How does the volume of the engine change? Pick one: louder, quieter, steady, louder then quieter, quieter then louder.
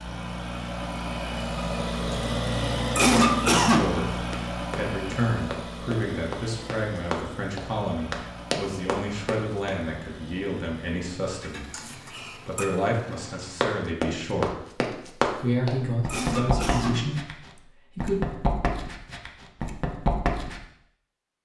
quieter.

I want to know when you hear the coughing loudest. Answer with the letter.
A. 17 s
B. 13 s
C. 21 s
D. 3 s
D.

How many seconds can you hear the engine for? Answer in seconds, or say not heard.
14 s.